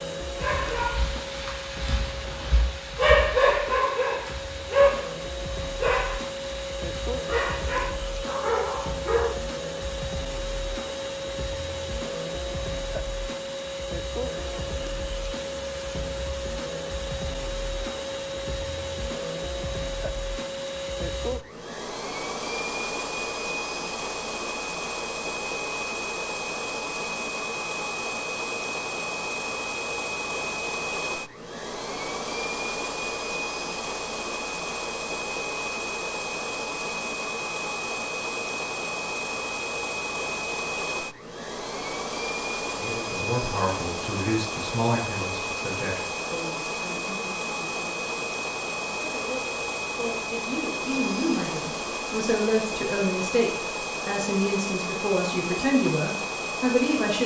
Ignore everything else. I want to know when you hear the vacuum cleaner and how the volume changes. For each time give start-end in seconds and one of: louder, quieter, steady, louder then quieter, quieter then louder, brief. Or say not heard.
0.0-57.2 steady.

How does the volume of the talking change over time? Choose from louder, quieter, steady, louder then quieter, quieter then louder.
quieter then louder.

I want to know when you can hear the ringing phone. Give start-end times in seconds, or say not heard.
1.9-2.6.